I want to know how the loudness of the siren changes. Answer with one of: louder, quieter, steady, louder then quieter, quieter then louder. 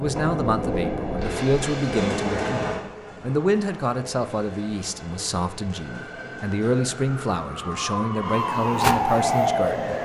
louder.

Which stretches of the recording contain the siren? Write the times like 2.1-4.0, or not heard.
5.8-10.0.